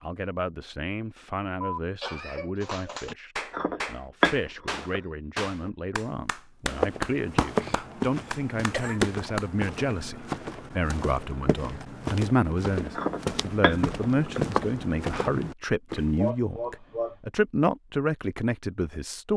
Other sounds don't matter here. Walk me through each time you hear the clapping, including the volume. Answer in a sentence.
You can hear the clapping from 2.6 to 9.5 s, getting quieter then louder.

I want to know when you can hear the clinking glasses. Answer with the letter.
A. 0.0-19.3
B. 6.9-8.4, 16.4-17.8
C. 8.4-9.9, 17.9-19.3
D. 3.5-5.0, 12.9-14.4
D.